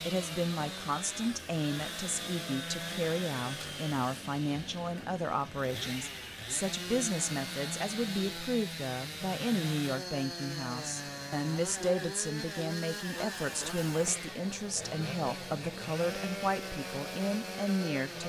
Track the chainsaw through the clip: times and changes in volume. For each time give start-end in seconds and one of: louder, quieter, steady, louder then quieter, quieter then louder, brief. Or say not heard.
0.0-18.2 steady.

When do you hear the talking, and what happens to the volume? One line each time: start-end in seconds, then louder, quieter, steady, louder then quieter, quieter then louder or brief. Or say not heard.
0.1-18.2 steady.